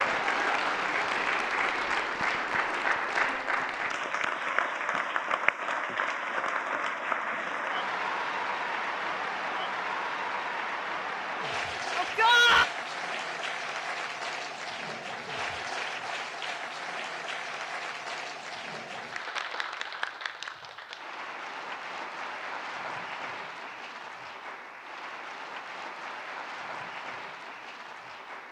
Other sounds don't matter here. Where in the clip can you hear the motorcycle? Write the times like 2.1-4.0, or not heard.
not heard.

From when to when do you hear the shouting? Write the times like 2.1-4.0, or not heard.
11.9-12.7.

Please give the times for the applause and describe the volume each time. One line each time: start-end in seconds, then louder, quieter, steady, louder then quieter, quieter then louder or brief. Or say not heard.
0.0-28.4 quieter.